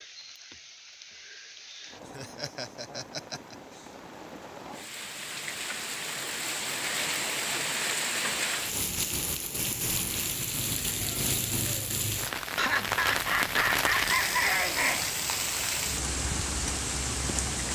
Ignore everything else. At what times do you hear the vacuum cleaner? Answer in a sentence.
You can't hear the vacuum cleaner here.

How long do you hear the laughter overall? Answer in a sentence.
You can hear the laughter for 4 seconds altogether.